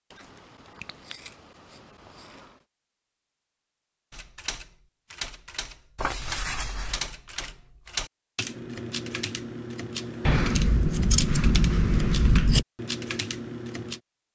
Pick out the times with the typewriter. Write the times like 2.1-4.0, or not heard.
4.1-14.0.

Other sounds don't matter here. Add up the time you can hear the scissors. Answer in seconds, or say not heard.
6 s.